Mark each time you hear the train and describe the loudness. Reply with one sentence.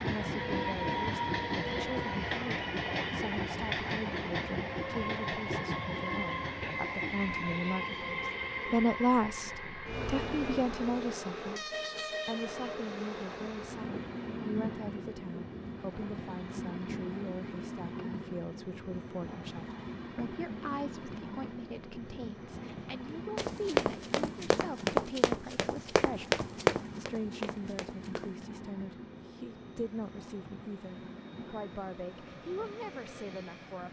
The train can be heard from 0.0 to 33.8 s, getting quieter.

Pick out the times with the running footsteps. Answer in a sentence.
You can hear the running footsteps from 23.4 to 28.4 s.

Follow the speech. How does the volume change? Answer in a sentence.
The loudness of the speech goes up, then down.